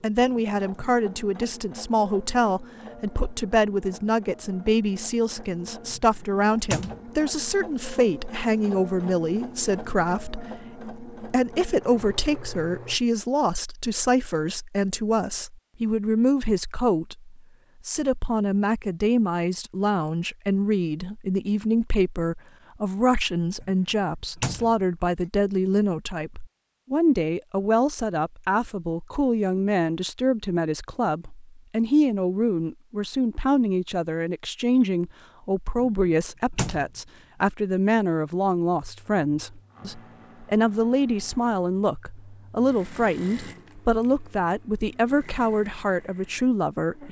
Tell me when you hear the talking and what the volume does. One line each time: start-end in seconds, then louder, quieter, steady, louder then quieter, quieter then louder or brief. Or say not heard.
0.0-47.0 steady.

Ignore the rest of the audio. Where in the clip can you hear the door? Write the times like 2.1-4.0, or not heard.
5.9-7.0, 23.6-24.8, 35.8-36.9.